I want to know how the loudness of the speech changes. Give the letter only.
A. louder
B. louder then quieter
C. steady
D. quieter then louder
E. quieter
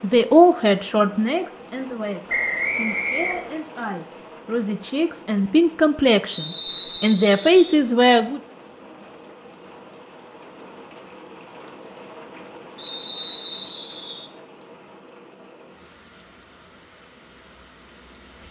D.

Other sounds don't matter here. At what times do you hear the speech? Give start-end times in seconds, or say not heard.
0.0-8.4.